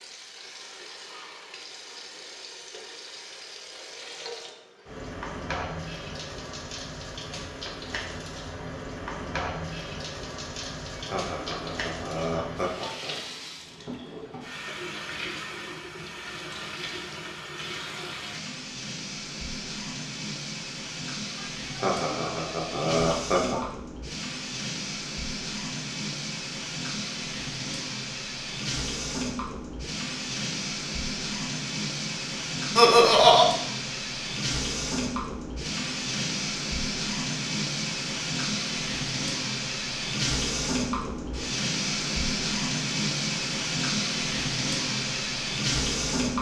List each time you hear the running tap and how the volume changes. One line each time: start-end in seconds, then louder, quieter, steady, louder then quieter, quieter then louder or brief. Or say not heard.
0.0-46.3 louder.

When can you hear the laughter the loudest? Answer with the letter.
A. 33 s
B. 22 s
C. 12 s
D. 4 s
A.